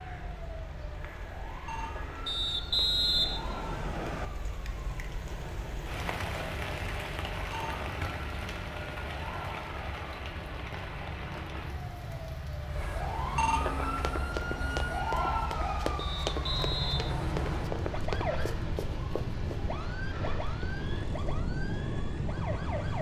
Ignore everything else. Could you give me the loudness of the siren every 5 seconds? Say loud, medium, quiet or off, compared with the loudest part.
medium, medium, loud, loud, loud.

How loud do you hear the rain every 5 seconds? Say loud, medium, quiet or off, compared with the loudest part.
medium, loud, loud, medium, medium.